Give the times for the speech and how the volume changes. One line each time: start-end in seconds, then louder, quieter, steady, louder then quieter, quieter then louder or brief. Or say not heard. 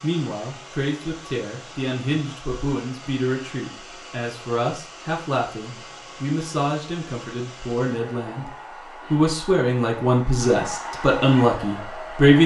0.0-12.4 louder.